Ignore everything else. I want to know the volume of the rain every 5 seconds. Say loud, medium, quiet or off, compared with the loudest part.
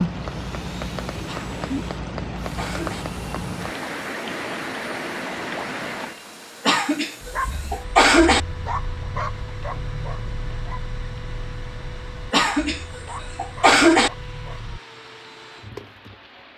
loud, medium, quiet, quiet.